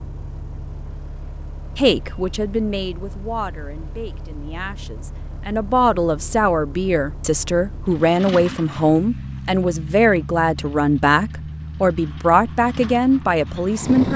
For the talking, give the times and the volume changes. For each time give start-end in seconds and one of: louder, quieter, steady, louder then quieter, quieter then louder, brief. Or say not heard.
1.8-14.1 louder.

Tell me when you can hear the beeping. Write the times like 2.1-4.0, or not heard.
not heard.